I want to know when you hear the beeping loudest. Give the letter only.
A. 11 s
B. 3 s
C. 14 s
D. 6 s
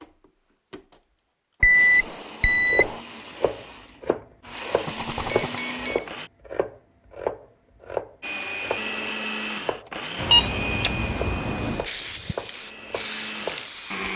B.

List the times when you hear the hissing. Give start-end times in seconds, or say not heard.
10.2-14.1.